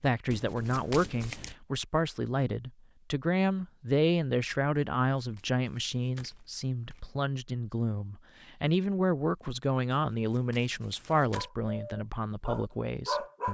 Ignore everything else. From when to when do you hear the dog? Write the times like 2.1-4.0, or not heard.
11.3-13.5.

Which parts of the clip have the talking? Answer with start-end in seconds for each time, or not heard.
0.0-13.5.